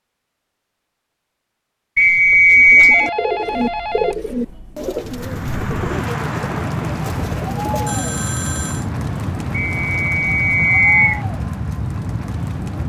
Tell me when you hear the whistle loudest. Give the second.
3 s.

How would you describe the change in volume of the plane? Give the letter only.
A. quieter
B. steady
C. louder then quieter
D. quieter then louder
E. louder
B.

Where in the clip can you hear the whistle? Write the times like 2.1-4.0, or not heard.
1.9-3.1, 9.8-11.2.